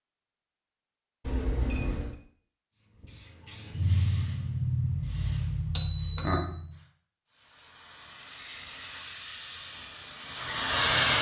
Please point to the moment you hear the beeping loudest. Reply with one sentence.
The loudest moment of the beeping is at 6 seconds.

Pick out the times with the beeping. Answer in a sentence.
You can hear the beeping from 1.2 to 2.2 s and from 5.8 to 6.5 s.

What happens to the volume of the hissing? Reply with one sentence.
The volume of the hissing goes down, then up.